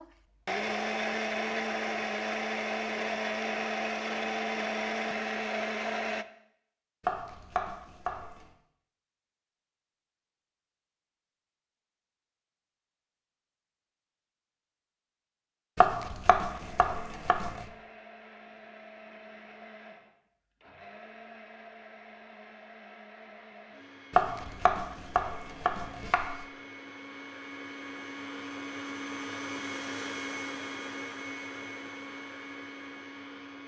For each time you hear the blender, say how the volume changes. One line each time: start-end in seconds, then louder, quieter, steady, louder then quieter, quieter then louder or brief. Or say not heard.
0.0-6.2 steady
16.4-33.6 louder.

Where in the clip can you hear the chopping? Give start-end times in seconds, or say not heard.
7.0-8.4, 15.8-17.6, 24.1-26.4.